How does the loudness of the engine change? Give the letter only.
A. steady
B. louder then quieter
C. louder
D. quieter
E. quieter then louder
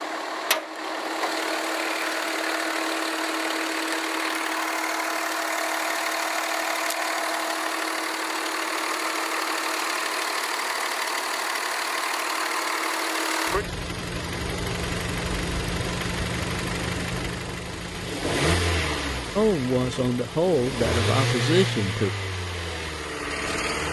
A.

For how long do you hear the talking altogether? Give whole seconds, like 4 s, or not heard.
3 s.